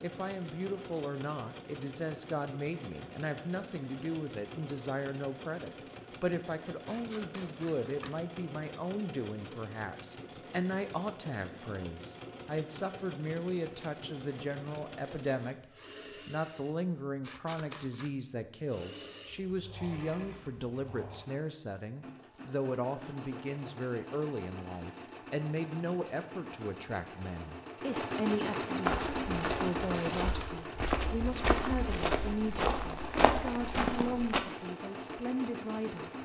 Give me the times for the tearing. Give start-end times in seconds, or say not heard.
not heard.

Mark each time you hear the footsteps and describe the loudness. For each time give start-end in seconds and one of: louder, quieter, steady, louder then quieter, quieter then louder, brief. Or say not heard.
28.8-34.4 louder.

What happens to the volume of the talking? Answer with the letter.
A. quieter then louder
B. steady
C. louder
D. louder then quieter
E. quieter
B.